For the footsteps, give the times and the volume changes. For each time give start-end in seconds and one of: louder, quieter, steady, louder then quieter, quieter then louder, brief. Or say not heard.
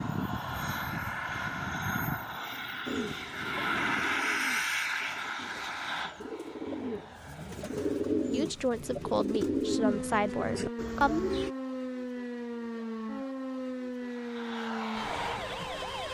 not heard.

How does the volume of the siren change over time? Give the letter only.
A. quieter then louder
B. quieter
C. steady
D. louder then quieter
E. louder
C.